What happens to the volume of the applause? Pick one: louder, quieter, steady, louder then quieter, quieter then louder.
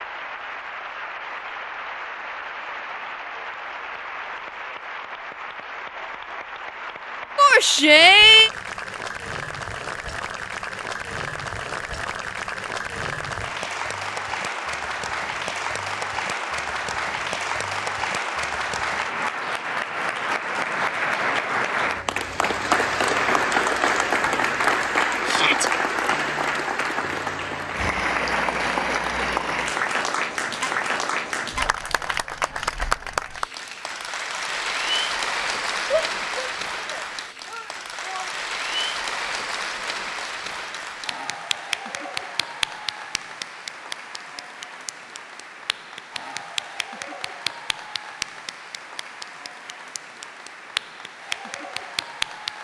louder then quieter.